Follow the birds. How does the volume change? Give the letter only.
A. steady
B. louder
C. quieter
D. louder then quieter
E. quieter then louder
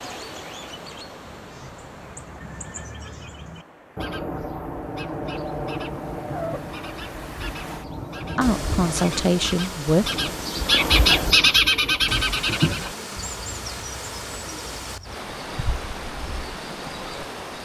D.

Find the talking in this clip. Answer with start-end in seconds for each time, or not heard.
8.3-10.1.